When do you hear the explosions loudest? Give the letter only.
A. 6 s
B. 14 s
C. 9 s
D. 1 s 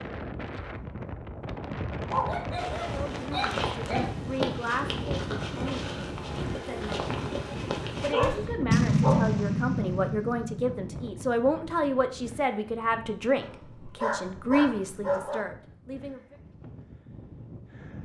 C.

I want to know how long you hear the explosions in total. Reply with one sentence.
You can hear the explosions for 2 seconds altogether.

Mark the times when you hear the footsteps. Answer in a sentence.
You can hear the footsteps from 2.5 to 8.4 s.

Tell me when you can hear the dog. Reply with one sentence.
The dog can be heard from 2.0 to 4.0 s, from 8.0 to 9.4 s and from 13.4 to 15.4 s.